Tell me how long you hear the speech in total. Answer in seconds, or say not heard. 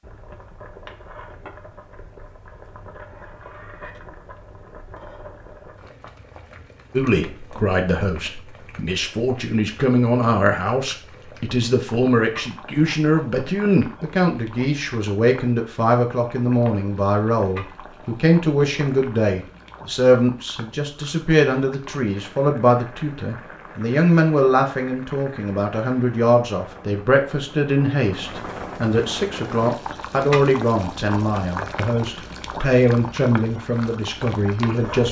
28 s.